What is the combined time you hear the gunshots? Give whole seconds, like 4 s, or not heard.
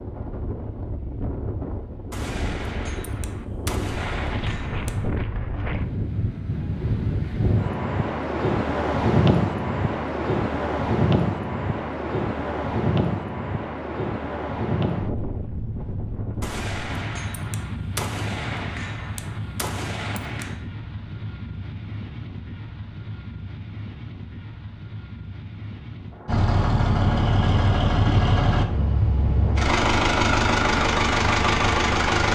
7 s.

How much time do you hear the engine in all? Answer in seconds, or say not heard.
6 s.